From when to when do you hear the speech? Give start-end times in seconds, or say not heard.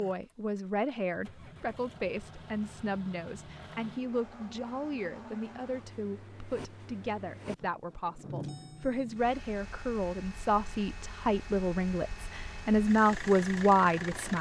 0.0-14.3.